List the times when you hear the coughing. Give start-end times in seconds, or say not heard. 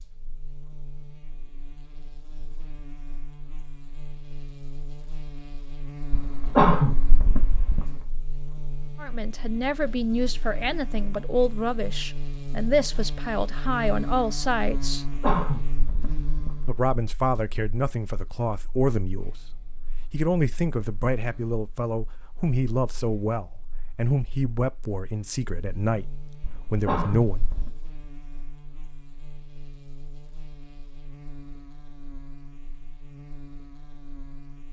6.1-8.1, 14.9-16.8, 26.4-27.7.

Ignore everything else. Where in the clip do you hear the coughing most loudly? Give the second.
7 s.